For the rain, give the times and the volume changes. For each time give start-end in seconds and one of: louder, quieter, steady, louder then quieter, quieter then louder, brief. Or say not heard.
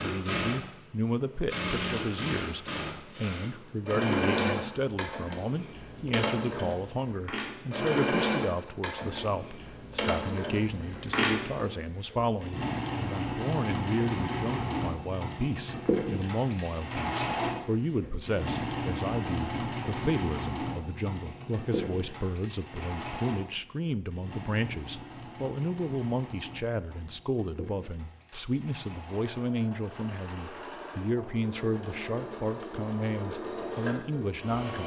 not heard.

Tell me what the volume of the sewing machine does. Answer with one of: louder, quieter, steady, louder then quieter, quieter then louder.
quieter.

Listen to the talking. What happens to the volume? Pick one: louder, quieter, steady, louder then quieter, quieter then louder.
steady.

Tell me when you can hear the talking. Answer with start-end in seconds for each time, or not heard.
0.0-34.8.